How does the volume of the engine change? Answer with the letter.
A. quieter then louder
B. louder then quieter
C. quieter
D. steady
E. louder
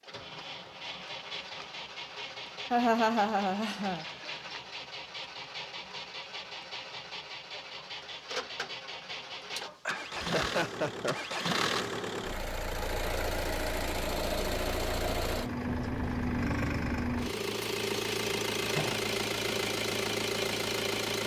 E.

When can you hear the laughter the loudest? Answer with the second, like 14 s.
3 s.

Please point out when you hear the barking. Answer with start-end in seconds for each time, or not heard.
not heard.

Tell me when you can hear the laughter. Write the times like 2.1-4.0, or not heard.
2.7-4.0, 10.2-11.4, 18.6-19.1.